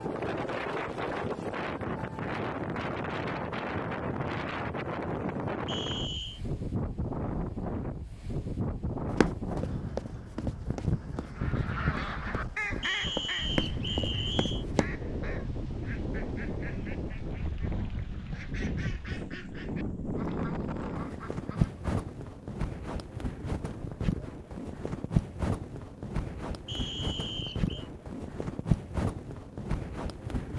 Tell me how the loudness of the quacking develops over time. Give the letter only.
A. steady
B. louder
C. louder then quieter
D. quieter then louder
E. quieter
E.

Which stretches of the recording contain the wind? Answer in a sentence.
You can hear the wind from 0.0 to 30.5 s.